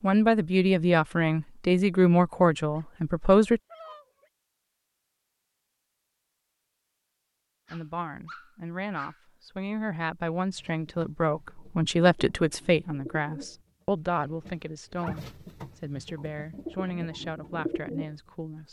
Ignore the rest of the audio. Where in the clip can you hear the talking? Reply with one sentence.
You can hear the talking from 0.0 to 3.6 s and from 7.7 to 18.6 s.